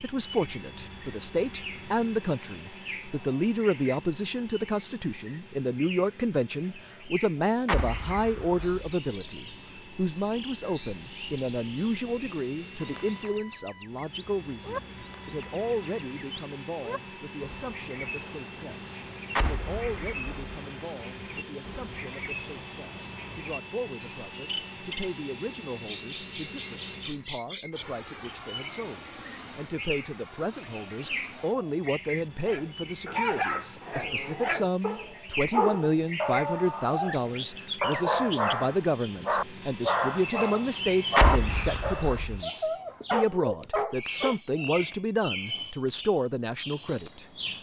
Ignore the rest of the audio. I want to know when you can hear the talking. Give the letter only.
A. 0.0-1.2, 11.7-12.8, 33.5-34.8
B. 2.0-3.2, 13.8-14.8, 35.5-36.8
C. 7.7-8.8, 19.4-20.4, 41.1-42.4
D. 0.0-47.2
D.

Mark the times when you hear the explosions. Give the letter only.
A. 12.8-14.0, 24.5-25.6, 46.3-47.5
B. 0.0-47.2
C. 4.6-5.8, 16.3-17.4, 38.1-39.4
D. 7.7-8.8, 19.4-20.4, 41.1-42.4
D.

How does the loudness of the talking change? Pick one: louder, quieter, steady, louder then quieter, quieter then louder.
quieter then louder.